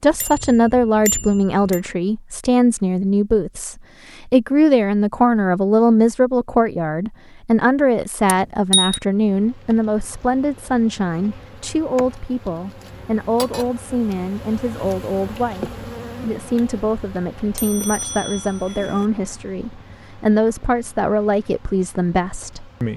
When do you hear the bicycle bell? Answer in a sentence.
The bicycle bell can be heard from 0.2 to 1.8 s, from 8.2 to 9.0 s and from 17.6 to 19.1 s.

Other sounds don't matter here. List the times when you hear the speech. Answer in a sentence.
The speech can be heard from 0.0 to 22.9 s.